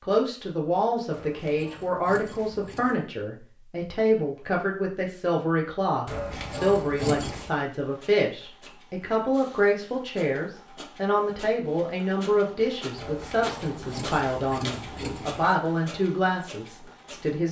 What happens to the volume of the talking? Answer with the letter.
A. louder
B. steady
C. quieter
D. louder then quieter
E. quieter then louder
B.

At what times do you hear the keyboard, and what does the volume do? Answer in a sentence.
You can't hear the keyboard here.